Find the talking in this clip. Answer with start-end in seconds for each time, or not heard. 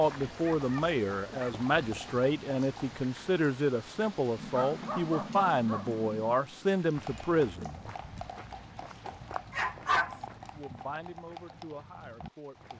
0.0-7.8, 10.6-12.7.